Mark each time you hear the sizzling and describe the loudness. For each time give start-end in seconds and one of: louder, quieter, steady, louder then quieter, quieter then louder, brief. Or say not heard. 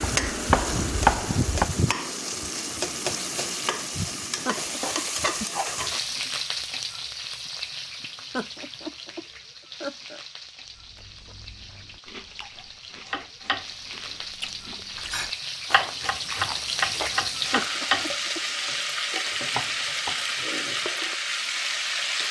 0.0-22.2 quieter then louder.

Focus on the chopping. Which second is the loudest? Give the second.
1 s.